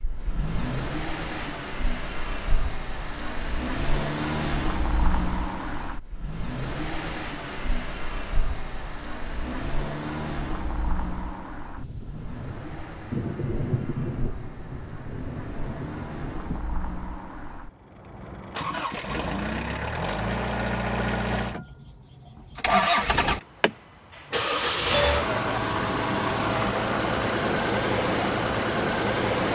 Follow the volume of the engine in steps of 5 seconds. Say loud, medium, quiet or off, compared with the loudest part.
medium, medium, quiet, medium, loud, loud.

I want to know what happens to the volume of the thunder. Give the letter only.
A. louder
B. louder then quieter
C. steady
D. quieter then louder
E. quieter
B.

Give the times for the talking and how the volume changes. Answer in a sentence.
The talking can't be heard in this clip.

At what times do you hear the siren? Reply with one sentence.
You can't hear the siren here.